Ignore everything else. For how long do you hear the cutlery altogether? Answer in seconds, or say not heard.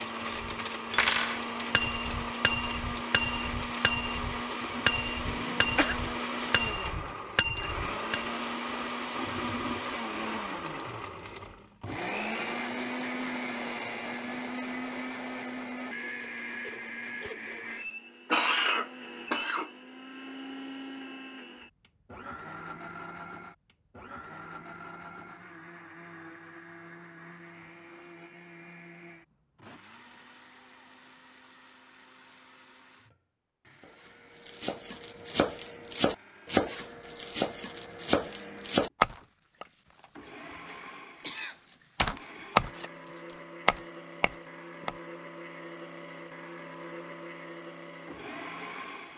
8 s.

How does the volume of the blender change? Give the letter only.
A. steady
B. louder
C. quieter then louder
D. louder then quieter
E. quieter
C.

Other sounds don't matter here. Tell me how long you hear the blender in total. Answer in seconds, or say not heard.
49 s.